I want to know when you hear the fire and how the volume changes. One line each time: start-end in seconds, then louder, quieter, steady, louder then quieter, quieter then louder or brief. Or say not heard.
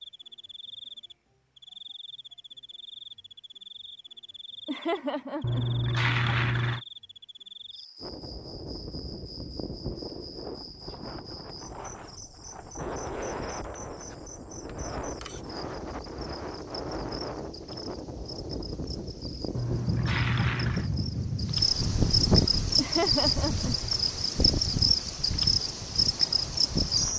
not heard.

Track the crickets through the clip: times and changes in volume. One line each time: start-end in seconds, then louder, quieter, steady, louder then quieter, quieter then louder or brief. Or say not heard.
0.0-27.1 louder.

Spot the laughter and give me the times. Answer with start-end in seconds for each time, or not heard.
4.7-5.7, 22.8-23.8.